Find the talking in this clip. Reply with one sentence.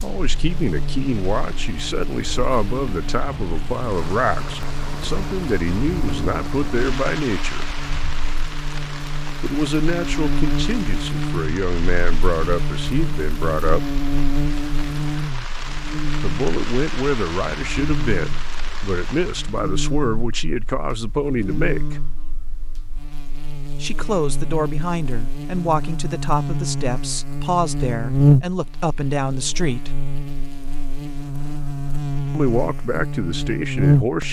The talking can be heard from 0.0 to 7.7 s, from 9.4 to 13.8 s, from 16.2 to 22.0 s, from 23.8 to 29.9 s and from 32.3 to 34.2 s.